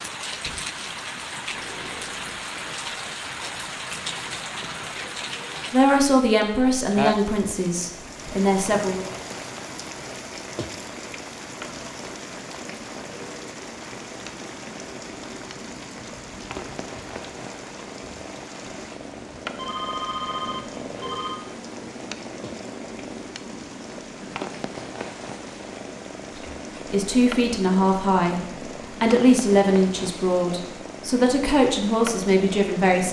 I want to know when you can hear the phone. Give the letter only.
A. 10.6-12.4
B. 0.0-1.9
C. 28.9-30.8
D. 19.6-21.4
D.